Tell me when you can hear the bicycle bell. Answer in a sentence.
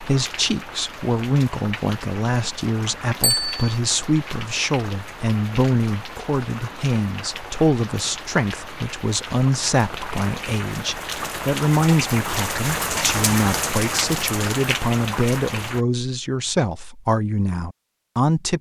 You can hear the bicycle bell from 3.2 to 3.8 s.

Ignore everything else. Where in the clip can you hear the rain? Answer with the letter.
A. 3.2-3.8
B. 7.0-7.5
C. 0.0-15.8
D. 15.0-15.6
C.